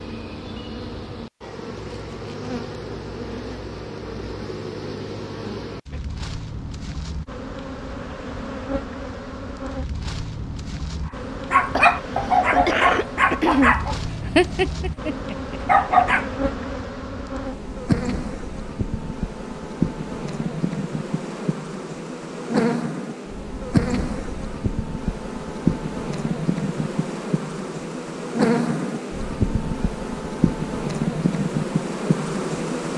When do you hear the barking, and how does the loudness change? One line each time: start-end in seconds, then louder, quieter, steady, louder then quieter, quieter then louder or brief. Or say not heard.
11.5-16.3 steady.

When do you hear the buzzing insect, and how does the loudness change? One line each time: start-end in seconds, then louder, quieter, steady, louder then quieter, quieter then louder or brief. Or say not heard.
0.0-32.9 louder.